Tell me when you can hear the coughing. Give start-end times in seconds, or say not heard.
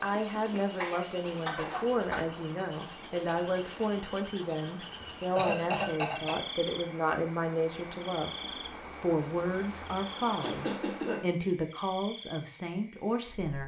0.3-2.2, 5.3-6.3, 10.4-11.2.